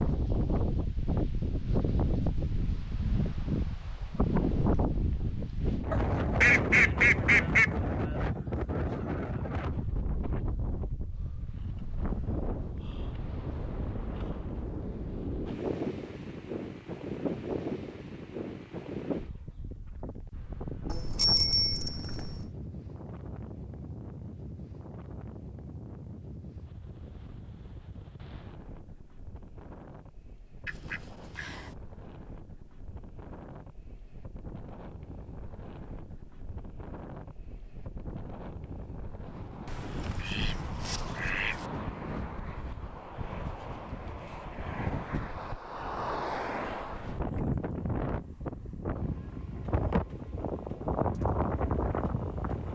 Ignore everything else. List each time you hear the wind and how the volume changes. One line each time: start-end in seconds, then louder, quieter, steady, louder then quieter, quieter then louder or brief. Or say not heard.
0.0-52.7 quieter then louder.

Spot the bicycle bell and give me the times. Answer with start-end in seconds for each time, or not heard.
20.9-22.5.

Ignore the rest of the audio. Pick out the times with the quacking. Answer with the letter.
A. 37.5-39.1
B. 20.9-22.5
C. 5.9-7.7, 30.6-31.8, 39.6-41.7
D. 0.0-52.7
C.